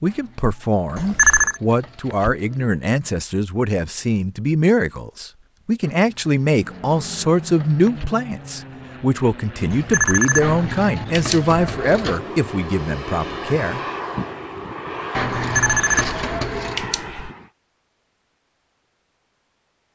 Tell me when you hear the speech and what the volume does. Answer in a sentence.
The speech can be heard from 0.0 to 13.8 s, at a steady volume.